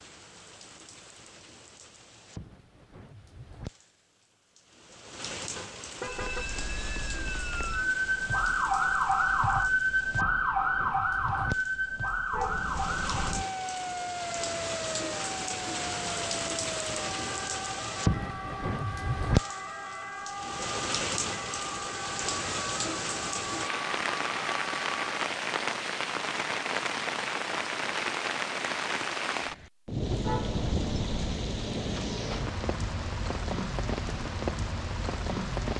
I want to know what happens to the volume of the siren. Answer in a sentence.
The volume of the siren goes down.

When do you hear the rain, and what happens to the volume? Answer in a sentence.
You can hear the rain from 0.0 to 35.7 s, getting louder.